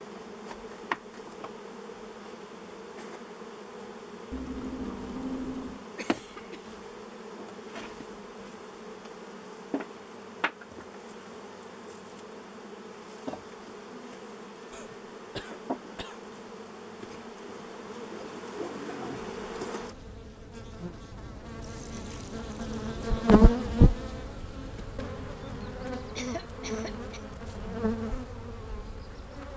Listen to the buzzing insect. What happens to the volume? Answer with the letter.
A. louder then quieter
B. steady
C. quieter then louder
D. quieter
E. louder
E.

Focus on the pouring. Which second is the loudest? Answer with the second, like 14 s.
5 s.